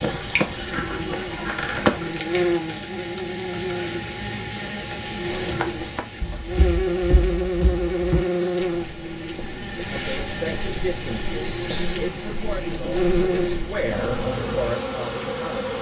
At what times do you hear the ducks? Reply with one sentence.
You can hear the ducks from 0.1 to 2.0 s.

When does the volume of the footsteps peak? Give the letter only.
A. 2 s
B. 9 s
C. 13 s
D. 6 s
A.